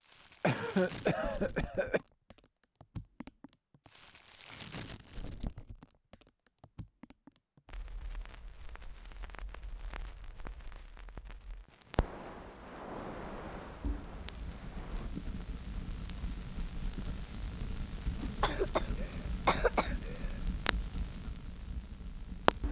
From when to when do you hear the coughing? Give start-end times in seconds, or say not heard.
0.4-2.0, 18.4-20.4.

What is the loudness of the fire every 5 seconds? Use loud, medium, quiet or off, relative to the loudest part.
medium, quiet, medium, medium, loud.